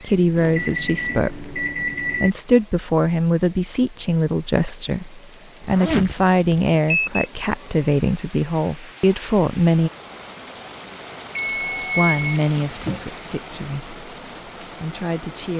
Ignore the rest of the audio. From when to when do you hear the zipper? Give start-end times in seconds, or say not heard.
5.6-6.8.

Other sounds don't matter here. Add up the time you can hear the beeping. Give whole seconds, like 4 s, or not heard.
5 s.